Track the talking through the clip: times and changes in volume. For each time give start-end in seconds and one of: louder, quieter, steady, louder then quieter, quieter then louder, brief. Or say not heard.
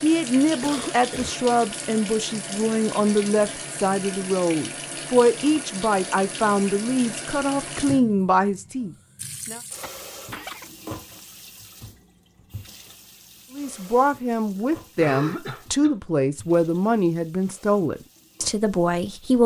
0.0-9.6 steady
13.6-19.4 steady.